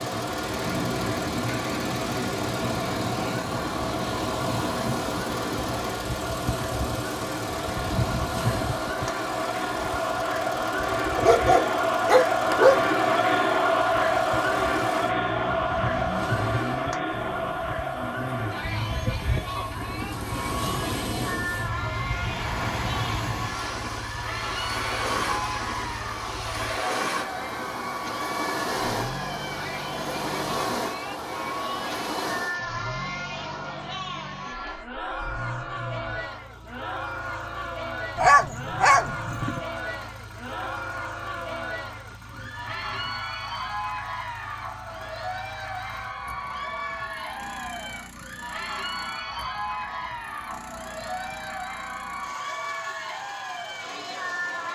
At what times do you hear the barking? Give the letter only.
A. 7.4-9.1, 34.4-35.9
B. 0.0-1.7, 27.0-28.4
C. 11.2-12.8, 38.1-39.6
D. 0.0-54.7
C.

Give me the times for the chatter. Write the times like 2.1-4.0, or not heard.
0.0-54.7.